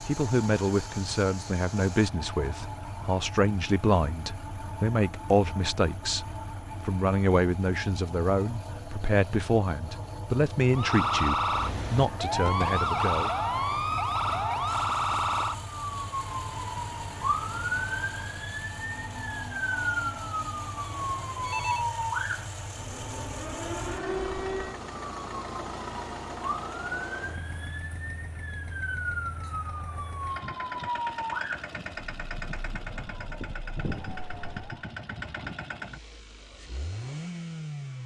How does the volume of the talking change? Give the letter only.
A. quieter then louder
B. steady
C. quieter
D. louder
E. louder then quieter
B.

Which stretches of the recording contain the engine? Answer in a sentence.
The engine can be heard from 0.0 to 38.0 s.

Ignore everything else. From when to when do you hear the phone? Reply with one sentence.
You can hear the phone from 20.9 to 21.9 s.